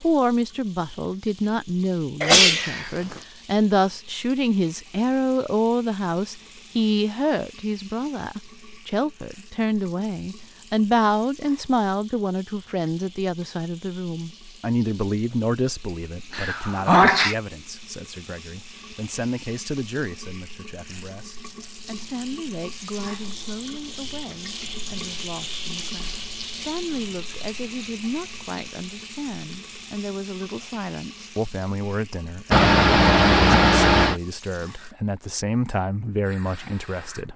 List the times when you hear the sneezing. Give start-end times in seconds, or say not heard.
2.2-3.2, 16.3-17.4, 32.5-34.1.